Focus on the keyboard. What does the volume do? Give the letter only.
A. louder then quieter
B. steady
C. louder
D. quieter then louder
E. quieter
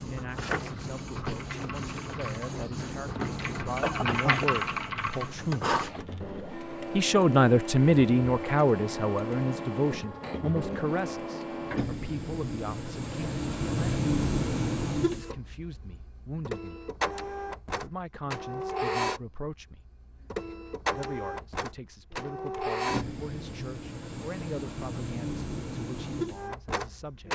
C.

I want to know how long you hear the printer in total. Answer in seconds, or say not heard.
27 s.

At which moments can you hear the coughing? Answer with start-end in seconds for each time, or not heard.
3.6-4.5.